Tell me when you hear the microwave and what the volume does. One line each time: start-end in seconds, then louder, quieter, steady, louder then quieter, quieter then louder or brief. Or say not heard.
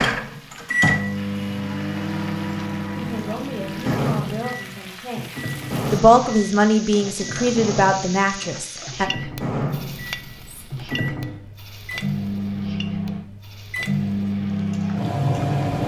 0.0-15.8 quieter then louder.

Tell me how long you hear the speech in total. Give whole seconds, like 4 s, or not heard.
6 s.